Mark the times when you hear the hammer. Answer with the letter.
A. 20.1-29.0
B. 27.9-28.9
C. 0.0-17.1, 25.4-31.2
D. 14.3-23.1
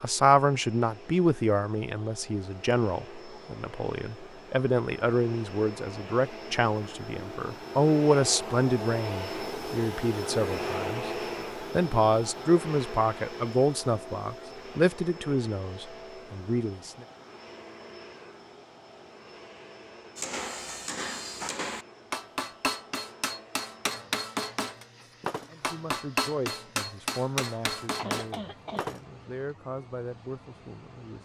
A.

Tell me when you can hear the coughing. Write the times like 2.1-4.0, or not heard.
27.9-28.9.